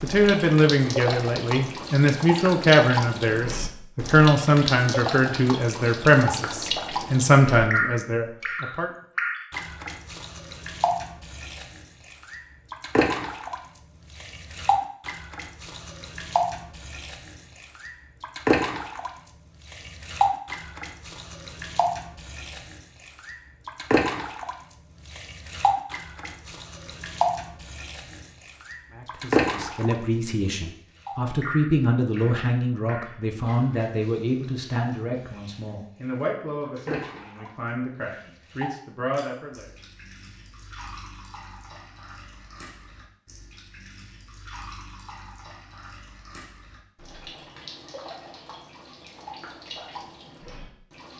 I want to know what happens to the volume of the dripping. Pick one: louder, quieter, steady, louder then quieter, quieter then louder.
quieter.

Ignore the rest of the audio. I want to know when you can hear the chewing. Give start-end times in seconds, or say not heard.
not heard.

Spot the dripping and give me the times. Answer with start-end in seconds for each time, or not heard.
0.0-51.1.